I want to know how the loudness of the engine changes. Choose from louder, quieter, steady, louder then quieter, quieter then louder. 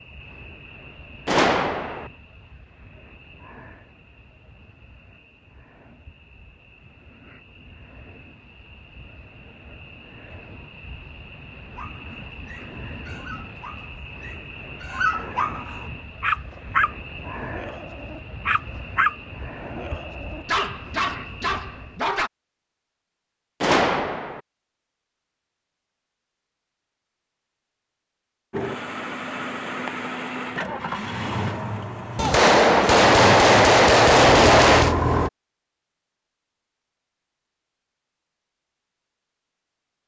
louder.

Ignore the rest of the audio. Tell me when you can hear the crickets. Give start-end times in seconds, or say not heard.
0.0-22.1.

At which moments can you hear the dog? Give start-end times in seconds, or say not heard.
11.7-22.3.